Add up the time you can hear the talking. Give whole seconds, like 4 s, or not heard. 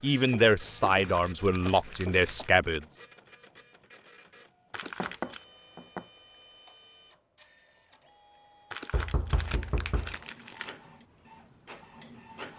3 s.